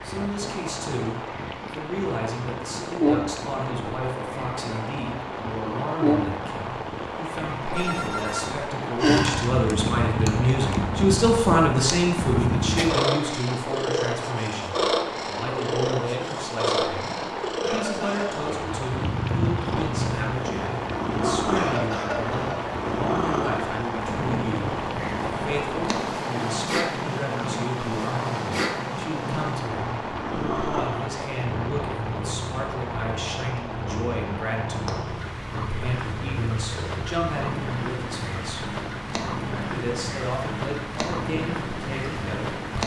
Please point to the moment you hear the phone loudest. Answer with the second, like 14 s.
9 s.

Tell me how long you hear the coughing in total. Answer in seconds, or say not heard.
2 s.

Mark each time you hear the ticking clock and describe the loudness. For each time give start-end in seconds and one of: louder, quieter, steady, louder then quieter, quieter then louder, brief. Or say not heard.
not heard.